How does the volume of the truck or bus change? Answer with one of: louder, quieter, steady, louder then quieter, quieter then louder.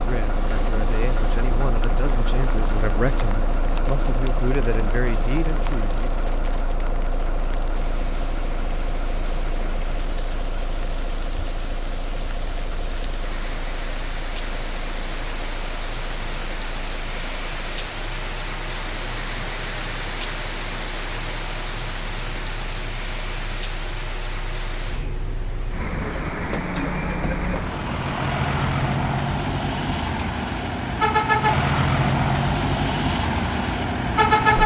quieter then louder.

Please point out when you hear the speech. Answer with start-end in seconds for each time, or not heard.
0.0-6.1.